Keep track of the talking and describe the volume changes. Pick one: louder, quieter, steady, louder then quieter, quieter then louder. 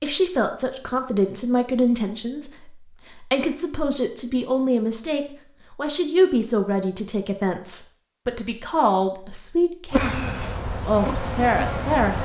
steady.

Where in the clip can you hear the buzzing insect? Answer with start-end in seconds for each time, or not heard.
9.9-12.2.